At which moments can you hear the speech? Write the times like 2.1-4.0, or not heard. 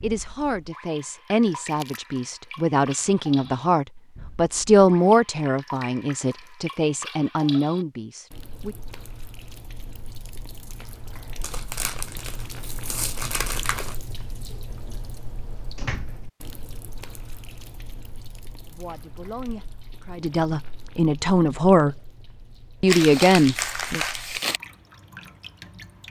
0.0-8.8, 18.6-22.0, 22.8-24.0.